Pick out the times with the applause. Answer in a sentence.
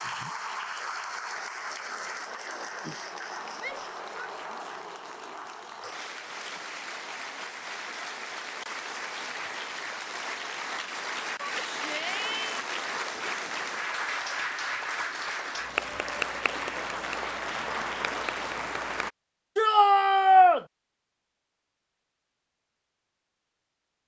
The applause can be heard from 0.0 to 19.1 s.